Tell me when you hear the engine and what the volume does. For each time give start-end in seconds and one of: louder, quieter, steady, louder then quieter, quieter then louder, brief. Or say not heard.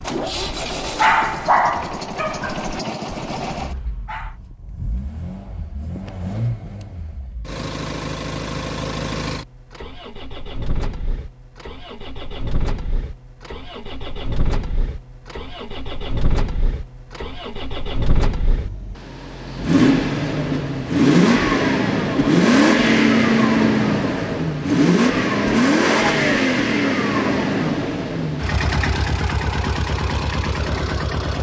0.0-31.3 louder.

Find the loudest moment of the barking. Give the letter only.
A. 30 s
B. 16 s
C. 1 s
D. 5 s
C.